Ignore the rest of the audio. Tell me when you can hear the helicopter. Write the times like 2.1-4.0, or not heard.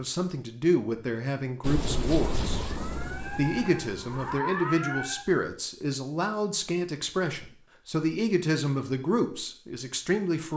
1.6-4.4.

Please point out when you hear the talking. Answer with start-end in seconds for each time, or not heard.
0.0-2.6, 3.4-10.5.